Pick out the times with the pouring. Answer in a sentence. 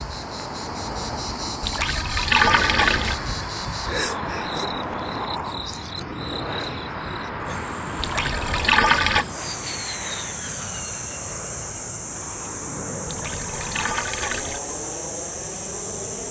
The pouring can be heard from 1.6 to 3.1 s, from 8.0 to 9.2 s and from 13.1 to 14.6 s.